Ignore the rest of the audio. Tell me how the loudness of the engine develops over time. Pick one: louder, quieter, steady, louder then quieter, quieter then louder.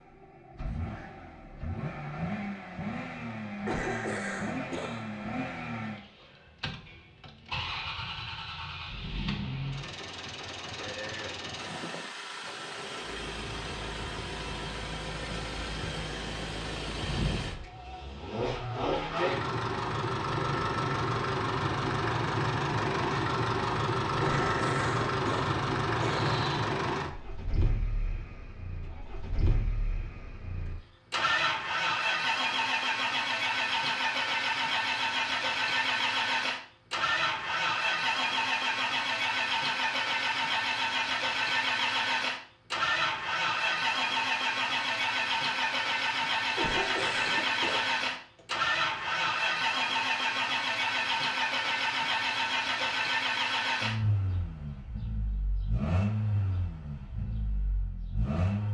louder.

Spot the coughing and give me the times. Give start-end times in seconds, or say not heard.
3.6-5.2, 24.2-26.8, 46.5-48.5.